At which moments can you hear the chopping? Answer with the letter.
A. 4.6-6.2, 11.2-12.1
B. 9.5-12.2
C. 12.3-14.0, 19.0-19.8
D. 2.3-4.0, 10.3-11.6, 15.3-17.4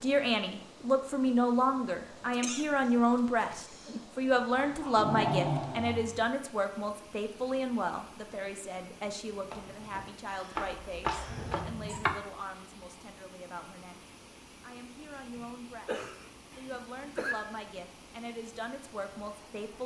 B.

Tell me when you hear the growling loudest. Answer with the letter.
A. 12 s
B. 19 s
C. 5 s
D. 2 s
C.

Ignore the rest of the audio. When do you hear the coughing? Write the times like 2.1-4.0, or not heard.
2.3-4.0, 10.3-11.6, 15.3-17.4.